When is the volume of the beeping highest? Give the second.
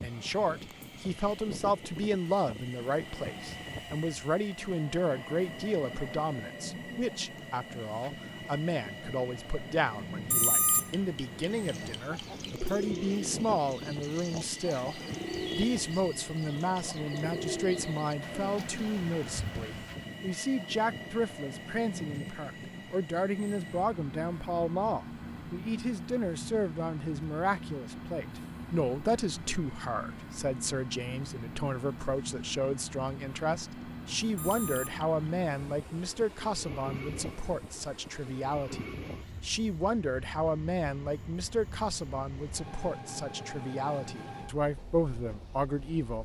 11 s.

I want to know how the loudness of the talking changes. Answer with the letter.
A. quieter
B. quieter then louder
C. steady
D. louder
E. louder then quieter
C.